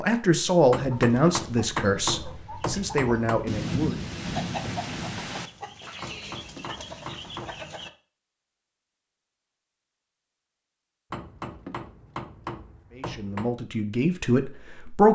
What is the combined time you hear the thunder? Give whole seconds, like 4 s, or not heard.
2 s.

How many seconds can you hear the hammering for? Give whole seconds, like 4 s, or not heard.
7 s.